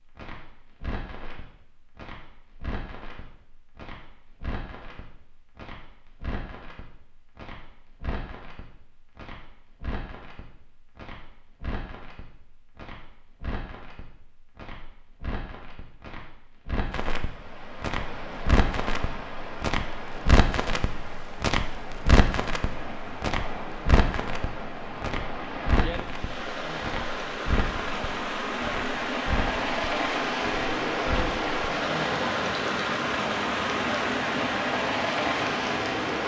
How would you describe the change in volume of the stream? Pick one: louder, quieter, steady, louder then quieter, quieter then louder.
louder.